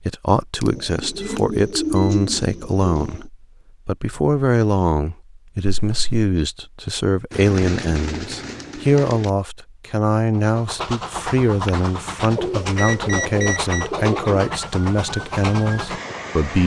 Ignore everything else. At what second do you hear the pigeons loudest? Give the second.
2 s.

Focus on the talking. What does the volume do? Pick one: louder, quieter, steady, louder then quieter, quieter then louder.
steady.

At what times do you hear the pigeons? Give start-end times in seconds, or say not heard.
0.7-3.3, 7.3-9.3, 12.3-14.6.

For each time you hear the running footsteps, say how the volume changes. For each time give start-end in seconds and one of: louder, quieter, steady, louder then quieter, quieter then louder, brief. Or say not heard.
not heard.